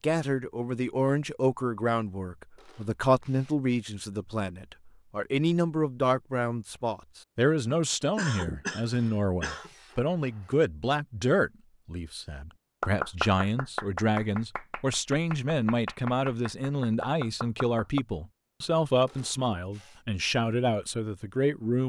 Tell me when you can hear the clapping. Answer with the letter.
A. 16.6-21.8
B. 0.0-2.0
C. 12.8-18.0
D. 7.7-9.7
C.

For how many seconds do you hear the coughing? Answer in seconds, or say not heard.
2 s.